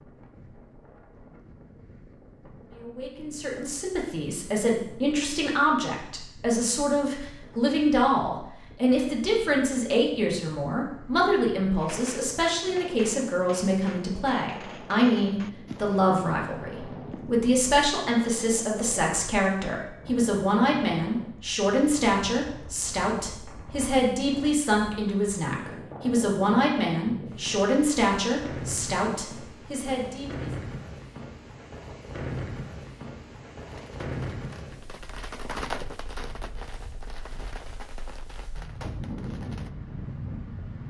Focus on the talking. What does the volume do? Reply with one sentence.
The volume of the talking stays about the same.